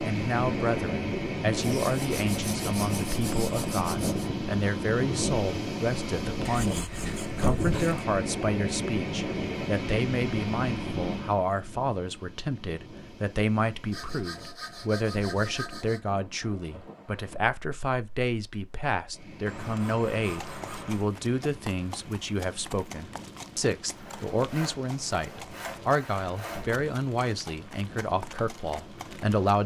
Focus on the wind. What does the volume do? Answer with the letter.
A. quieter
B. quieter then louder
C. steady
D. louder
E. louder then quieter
A.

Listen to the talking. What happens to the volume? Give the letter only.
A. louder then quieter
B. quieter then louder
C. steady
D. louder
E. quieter
C.